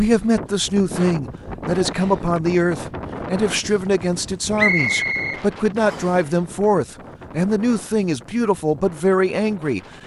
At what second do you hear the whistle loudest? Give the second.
5 s.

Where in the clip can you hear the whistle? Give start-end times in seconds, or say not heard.
4.5-6.2.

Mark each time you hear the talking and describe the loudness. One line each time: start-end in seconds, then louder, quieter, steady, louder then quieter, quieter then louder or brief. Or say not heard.
0.0-9.8 steady.